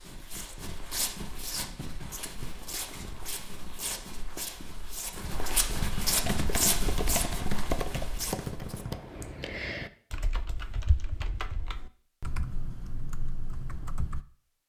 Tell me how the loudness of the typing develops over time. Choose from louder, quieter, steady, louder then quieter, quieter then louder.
quieter.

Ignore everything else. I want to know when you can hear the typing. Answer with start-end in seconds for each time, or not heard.
6.2-14.2.